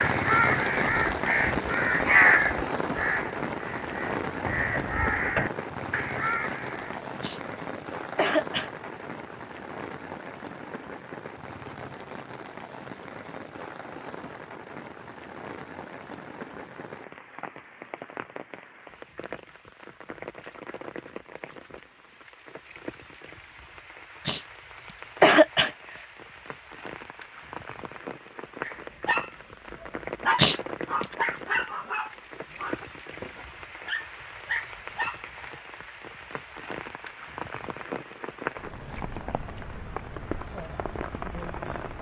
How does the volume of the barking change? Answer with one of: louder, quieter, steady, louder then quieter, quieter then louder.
quieter then louder.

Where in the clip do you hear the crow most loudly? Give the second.
2 s.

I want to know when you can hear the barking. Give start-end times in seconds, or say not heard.
28.6-35.2.